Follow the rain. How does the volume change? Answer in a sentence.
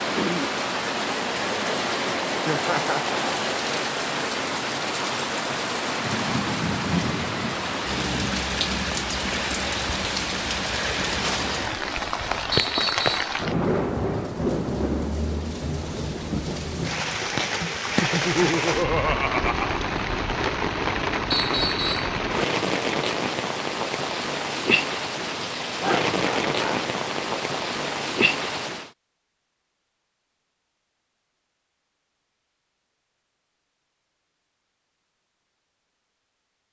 The loudness of the rain stays about the same.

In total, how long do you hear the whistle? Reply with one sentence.
You can hear the whistle for 2 seconds altogether.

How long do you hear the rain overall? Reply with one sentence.
You can hear the rain for 29 seconds altogether.